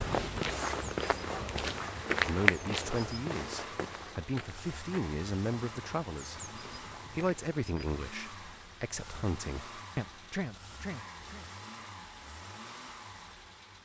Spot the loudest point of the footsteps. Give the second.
2 s.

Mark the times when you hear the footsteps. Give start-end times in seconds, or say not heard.
0.0-8.0.